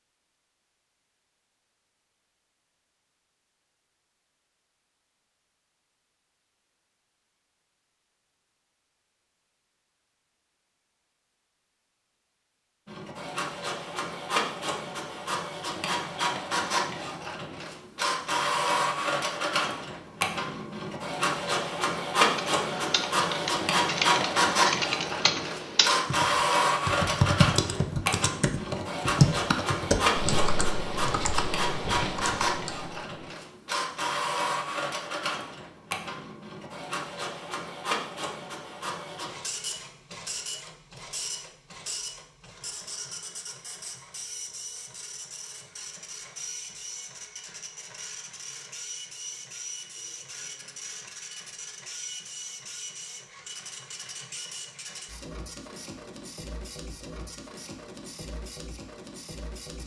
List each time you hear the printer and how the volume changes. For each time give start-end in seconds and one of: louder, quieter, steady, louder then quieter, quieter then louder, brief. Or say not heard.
12.8-59.8 quieter.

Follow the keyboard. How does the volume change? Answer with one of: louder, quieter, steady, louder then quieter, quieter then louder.
louder then quieter.